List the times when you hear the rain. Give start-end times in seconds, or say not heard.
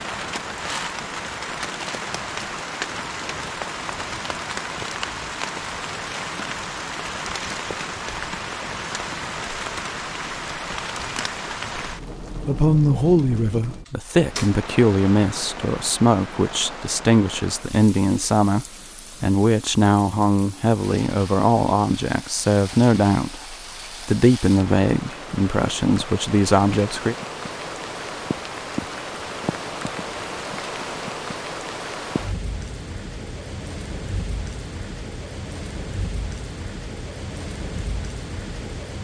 0.0-38.9.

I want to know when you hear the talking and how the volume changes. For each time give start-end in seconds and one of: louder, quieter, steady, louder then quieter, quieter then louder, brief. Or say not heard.
12.4-27.1 steady.